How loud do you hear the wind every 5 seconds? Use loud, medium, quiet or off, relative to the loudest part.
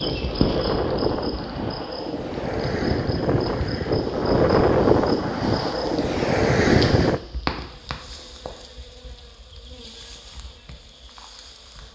loud, loud, off.